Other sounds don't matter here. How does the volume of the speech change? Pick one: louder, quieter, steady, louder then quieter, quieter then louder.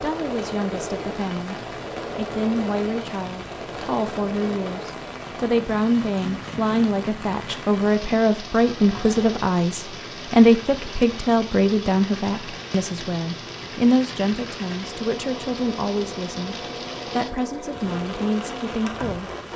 louder then quieter.